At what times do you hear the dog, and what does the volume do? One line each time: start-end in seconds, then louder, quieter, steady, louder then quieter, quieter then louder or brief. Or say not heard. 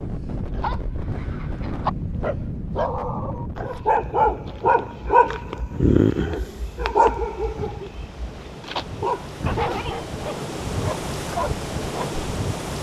0.5-12.2 louder then quieter.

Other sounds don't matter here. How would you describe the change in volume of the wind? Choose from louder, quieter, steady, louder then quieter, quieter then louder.
quieter then louder.